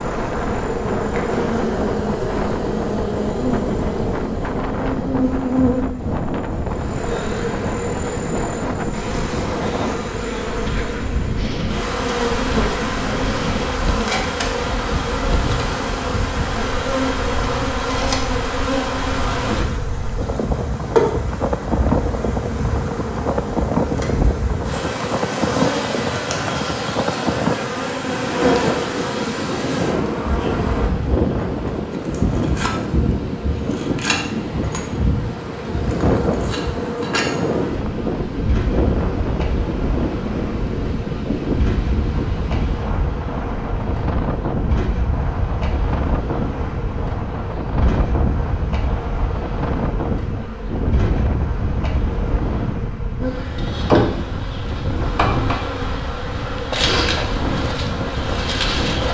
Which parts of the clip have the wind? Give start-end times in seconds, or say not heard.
0.0-59.0.